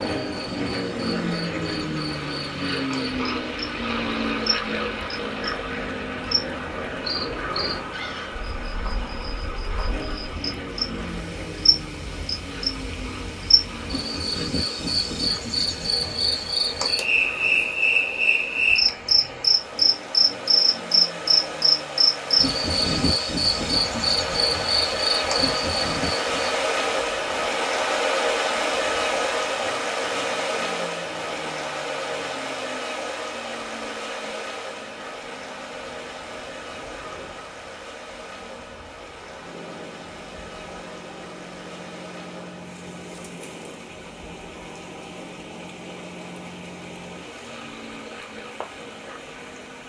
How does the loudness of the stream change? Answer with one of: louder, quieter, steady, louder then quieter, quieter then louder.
louder then quieter.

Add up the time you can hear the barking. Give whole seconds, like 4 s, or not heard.
not heard.